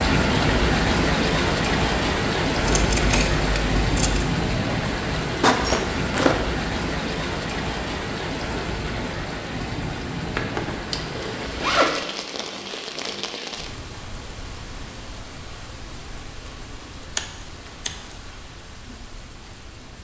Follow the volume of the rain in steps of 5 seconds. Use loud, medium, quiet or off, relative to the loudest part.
loud, medium, medium, quiet.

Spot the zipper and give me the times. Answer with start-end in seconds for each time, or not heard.
5.4-6.4, 10.3-12.1.